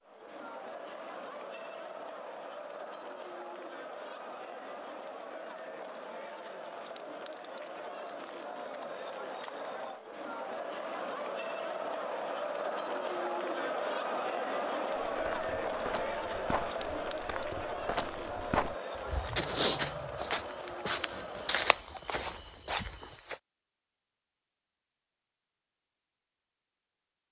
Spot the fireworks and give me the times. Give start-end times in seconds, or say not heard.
not heard.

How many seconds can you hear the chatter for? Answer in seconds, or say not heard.
22 s.